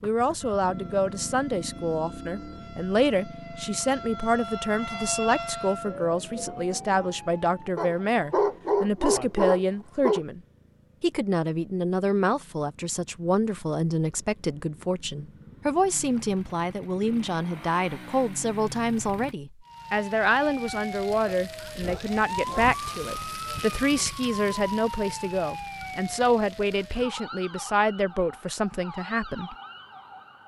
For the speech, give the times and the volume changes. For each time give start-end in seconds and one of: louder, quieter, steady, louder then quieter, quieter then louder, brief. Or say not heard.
0.0-10.4 steady
11.0-29.6 steady.